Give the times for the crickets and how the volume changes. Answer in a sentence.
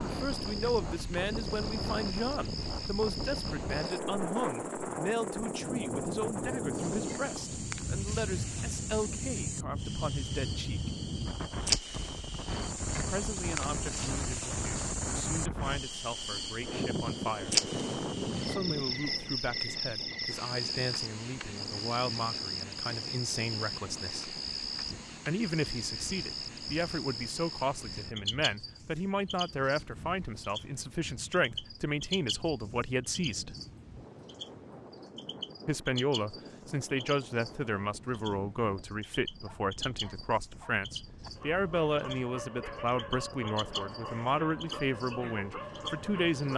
You can hear the crickets from 0.0 to 46.5 s, getting louder then quieter.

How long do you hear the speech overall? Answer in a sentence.
You can hear the speech for 41 seconds altogether.